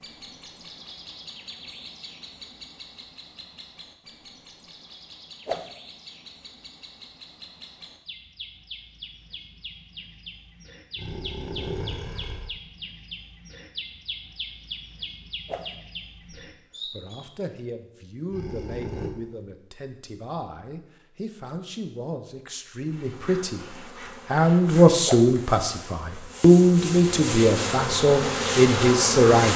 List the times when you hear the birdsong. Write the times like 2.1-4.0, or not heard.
0.0-17.3.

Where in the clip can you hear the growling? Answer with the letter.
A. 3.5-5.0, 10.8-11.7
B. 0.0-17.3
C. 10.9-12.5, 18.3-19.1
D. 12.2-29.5
C.